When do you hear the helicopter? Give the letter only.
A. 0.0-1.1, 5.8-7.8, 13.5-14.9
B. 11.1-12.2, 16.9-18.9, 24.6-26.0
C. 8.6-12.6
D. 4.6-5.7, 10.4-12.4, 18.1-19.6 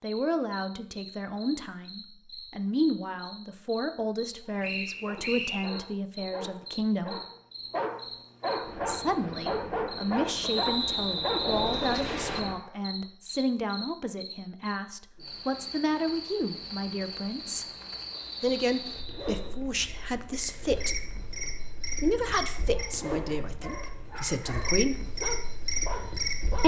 C.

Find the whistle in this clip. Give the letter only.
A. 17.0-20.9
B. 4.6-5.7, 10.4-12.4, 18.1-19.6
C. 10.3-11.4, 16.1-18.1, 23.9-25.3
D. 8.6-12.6
B.